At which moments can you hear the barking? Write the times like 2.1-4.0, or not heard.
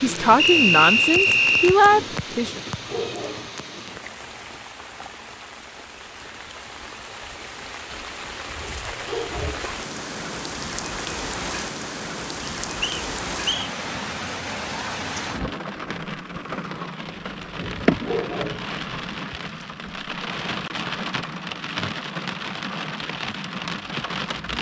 2.5-3.5, 8.6-9.7, 17.6-18.6.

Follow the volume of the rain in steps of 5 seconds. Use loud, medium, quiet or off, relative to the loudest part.
loud, medium, loud, loud, loud.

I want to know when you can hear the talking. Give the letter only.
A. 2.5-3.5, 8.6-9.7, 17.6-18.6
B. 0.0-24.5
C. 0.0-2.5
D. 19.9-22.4
C.